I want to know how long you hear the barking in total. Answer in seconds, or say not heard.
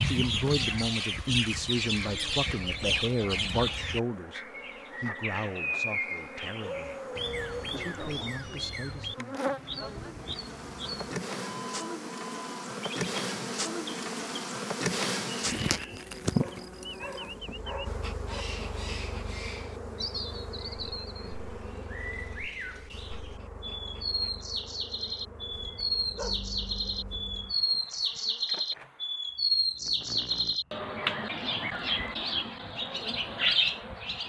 5 s.